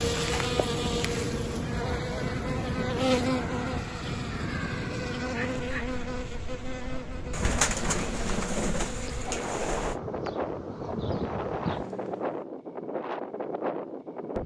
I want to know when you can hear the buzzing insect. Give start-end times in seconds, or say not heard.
0.0-12.4.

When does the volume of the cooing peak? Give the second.
8 s.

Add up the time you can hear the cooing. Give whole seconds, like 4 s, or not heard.
3 s.